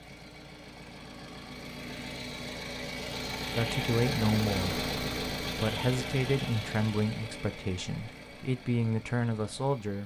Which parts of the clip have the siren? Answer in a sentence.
The siren can't be heard in this clip.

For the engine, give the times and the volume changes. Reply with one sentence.
You can hear the engine from 0.0 to 10.0 s, getting louder then quieter.